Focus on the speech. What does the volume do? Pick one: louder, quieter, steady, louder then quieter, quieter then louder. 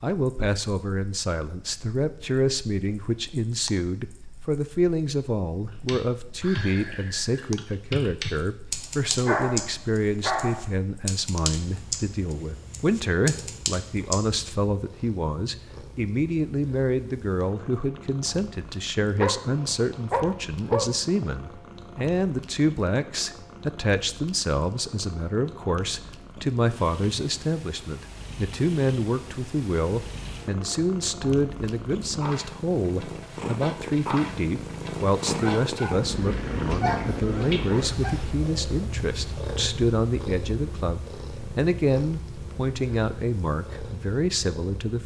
steady.